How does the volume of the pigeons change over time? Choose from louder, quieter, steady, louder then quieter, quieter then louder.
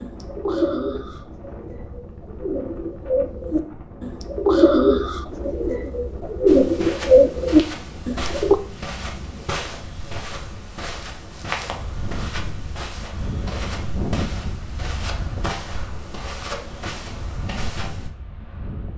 louder.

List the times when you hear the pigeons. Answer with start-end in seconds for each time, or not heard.
0.0-8.6.